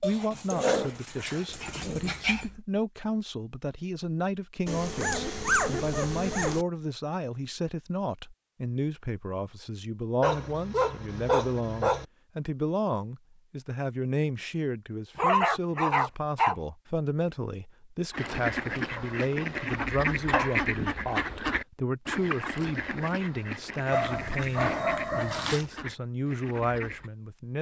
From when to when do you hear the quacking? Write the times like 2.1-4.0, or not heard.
18.1-27.1.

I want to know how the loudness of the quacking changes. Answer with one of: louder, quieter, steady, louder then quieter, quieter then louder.
quieter.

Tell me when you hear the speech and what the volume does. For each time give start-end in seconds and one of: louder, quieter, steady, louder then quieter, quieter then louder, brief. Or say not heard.
0.0-27.5 steady.